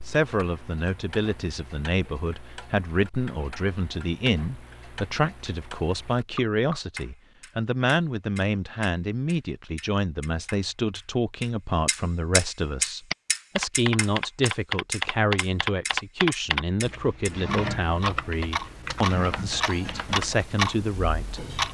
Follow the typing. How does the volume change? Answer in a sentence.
The loudness of the typing goes down.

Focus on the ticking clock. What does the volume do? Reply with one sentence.
The loudness of the ticking clock goes up.